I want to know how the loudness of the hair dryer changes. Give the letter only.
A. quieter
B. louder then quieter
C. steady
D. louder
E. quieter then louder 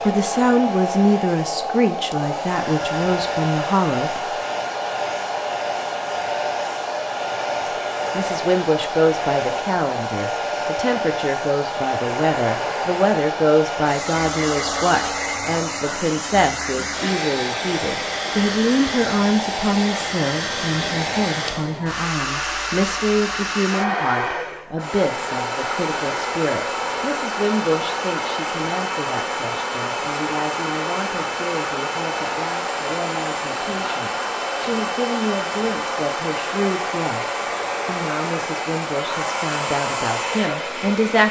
C.